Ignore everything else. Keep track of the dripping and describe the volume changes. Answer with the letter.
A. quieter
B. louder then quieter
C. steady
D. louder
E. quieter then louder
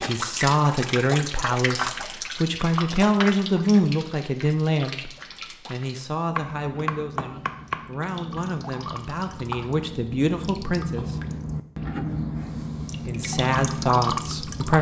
E.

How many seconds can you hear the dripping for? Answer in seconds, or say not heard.
15 s.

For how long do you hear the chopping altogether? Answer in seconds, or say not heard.
2 s.